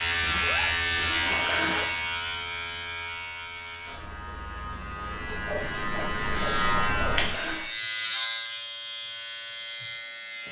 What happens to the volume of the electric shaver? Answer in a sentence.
The loudness of the electric shaver goes down, then up.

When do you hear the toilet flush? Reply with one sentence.
The toilet flush can be heard from 1.2 to 1.9 s and from 7.1 to 7.7 s.